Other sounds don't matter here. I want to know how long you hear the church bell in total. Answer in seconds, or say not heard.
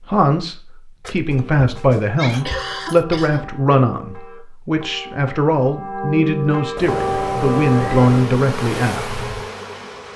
8 s.